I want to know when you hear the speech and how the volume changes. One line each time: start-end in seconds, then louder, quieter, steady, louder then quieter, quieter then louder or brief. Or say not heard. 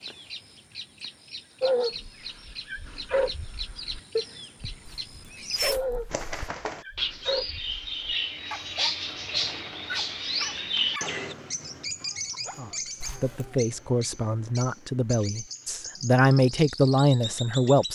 12.6-17.9 louder.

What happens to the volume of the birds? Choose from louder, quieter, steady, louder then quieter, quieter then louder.
louder then quieter.